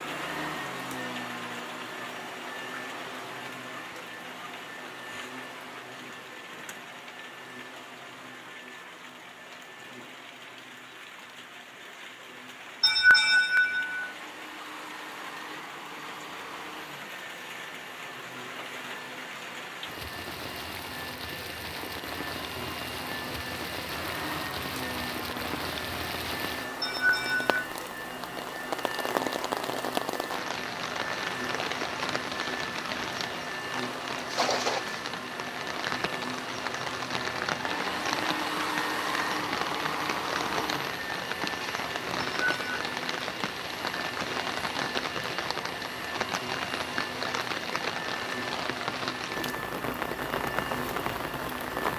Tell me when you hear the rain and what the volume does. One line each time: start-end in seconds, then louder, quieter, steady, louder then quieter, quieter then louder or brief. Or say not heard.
0.0-51.9 louder.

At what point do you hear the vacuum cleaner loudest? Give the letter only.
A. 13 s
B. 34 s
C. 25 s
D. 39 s
D.